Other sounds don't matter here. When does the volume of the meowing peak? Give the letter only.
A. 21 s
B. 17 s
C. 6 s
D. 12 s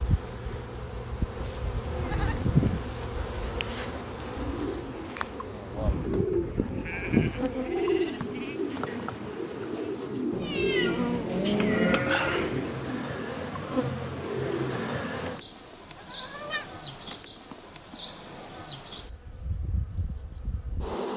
D.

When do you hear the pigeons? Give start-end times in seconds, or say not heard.
3.9-15.4.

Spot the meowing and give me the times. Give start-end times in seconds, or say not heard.
10.3-12.0.